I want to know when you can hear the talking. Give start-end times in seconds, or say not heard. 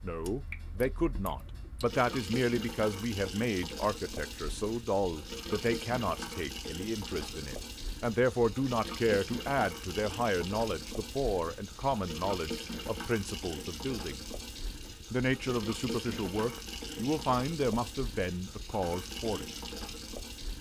0.0-14.2, 15.1-19.5.